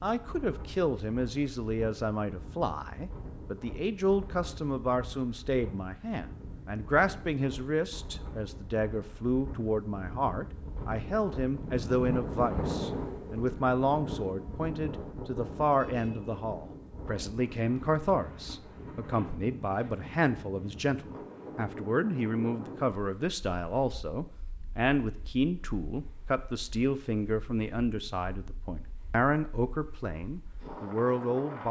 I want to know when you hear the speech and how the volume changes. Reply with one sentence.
You can hear the speech from 0.0 to 31.6 s, at a steady volume.